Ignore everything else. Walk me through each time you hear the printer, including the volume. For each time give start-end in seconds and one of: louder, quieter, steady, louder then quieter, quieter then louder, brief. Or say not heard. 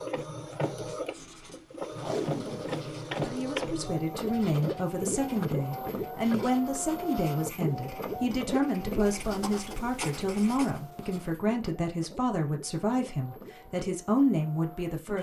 0.0-15.1 quieter.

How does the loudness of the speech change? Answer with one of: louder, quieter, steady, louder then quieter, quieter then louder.
steady.